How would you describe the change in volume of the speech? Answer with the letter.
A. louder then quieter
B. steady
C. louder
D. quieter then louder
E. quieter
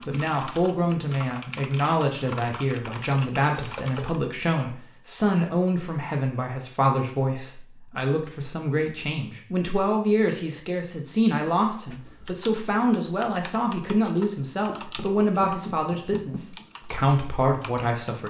B.